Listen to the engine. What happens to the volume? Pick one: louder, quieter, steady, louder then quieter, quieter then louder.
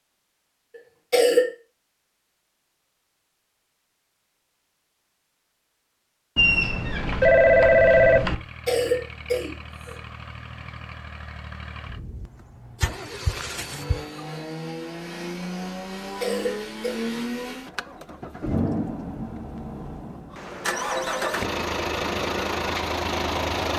louder.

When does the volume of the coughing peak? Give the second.
1 s.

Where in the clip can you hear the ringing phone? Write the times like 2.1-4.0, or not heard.
6.3-8.3, 12.8-14.2.